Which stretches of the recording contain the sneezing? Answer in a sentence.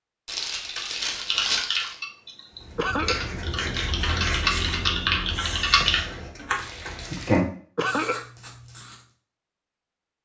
The sneezing can be heard from 2.8 to 3.2 s and from 7.8 to 8.2 s.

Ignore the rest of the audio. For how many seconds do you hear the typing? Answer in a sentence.
You can hear the typing for 6 seconds altogether.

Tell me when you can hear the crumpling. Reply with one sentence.
You can hear the crumpling from 0.2 to 1.9 s and from 6.5 to 7.4 s.